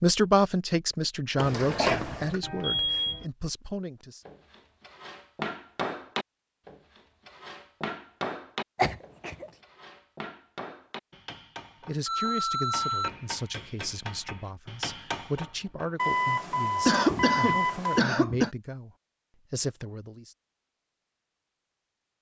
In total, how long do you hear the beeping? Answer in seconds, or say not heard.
4 s.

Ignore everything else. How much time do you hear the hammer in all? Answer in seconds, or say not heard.
12 s.